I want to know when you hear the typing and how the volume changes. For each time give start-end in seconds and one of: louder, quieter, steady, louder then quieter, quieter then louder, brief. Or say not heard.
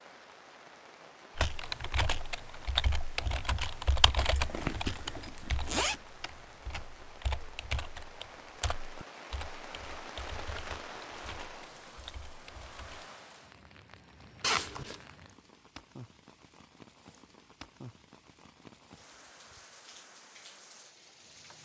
1.4-13.1 quieter.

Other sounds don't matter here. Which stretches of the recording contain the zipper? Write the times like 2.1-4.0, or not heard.
4.2-6.0, 14.4-15.1.